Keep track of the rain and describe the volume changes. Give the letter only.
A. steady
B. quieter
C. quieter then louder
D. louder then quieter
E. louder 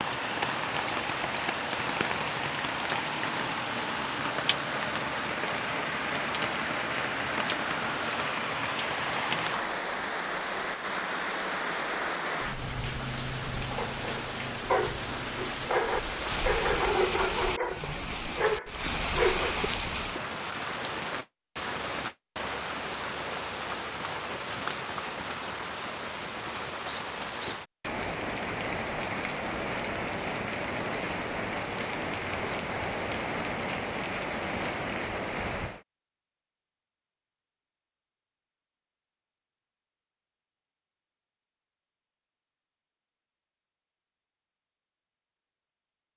A.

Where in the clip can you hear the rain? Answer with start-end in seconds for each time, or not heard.
0.0-35.8.